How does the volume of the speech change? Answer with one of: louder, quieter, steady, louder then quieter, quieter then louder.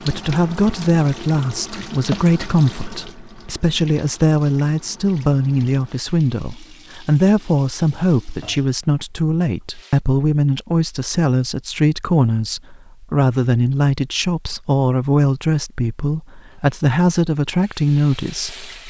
steady.